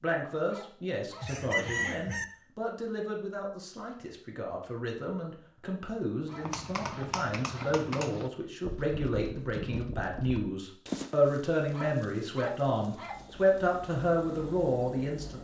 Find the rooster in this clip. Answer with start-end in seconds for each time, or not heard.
1.2-2.2.